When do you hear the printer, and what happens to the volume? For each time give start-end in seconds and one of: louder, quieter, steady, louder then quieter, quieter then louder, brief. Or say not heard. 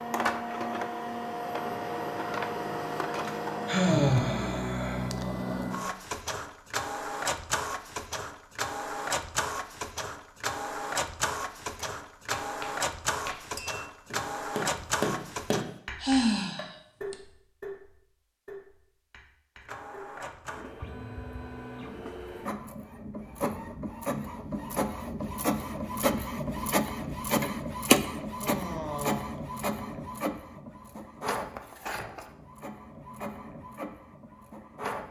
0.0-15.7 steady
19.6-35.0 louder then quieter.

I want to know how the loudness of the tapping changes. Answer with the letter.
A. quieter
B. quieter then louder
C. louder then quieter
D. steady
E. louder
C.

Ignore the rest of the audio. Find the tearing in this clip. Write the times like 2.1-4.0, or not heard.
not heard.